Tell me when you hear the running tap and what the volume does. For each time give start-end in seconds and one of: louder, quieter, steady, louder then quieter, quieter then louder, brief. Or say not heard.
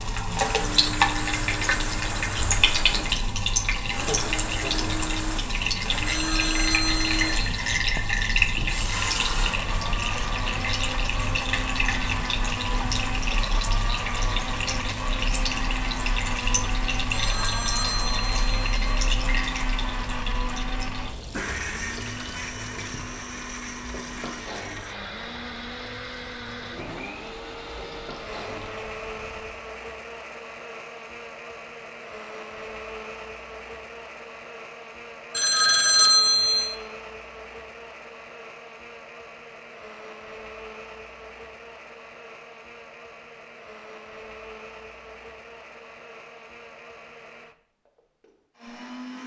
0.0-29.6 quieter.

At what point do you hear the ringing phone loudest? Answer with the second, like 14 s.
36 s.